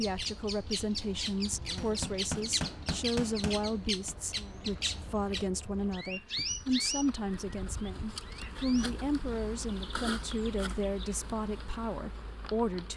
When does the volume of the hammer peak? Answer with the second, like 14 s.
2 s.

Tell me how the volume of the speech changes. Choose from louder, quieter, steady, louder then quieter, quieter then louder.
steady.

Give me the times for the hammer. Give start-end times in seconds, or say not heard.
1.5-4.2.